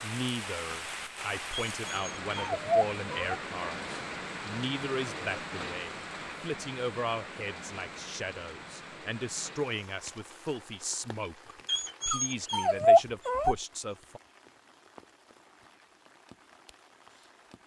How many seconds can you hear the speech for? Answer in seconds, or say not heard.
14 s.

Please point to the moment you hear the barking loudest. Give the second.
13 s.